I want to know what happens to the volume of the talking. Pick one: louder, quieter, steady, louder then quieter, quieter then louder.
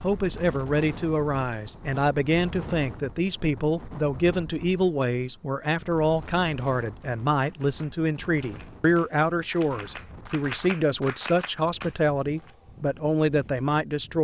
steady.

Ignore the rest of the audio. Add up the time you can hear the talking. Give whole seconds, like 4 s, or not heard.
14 s.